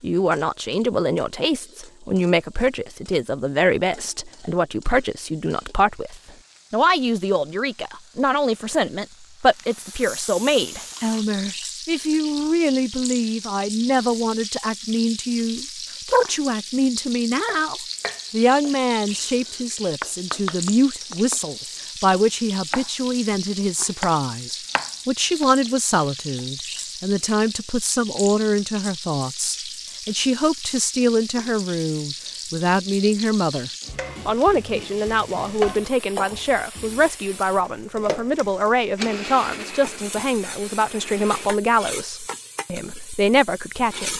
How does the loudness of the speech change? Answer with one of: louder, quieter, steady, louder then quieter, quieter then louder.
steady.